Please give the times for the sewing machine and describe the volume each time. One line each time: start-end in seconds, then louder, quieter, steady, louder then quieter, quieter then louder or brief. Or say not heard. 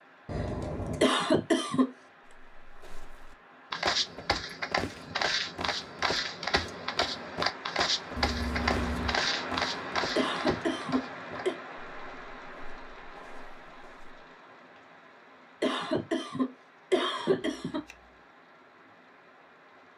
not heard.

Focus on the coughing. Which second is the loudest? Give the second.
1 s.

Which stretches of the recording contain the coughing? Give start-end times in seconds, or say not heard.
1.0-1.9, 10.2-11.6, 15.6-17.8.